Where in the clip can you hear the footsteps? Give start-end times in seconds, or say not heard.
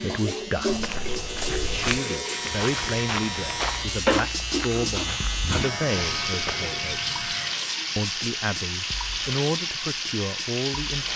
0.7-6.3.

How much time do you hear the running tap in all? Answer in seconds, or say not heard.
11 s.